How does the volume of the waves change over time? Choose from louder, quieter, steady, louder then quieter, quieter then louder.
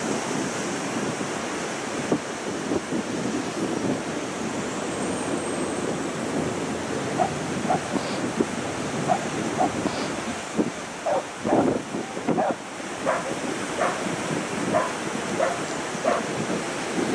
steady.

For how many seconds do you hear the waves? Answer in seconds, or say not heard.
17 s.